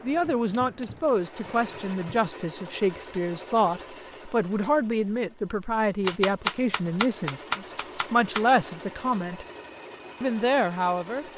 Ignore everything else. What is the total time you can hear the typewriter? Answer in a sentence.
You can hear the typewriter for 4 seconds altogether.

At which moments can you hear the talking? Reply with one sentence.
You can hear the talking from 0.0 to 9.4 s and from 10.2 to 11.2 s.